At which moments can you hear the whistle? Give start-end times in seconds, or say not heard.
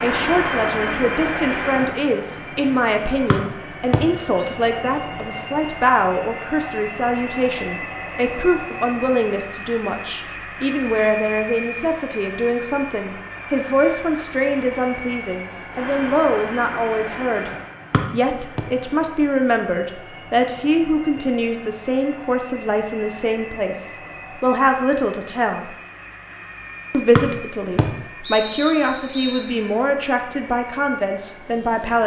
3.3-4.0, 17.9-18.6, 27.1-29.4.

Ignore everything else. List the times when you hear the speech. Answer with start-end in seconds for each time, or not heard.
0.0-17.5, 18.1-25.7, 26.9-32.0.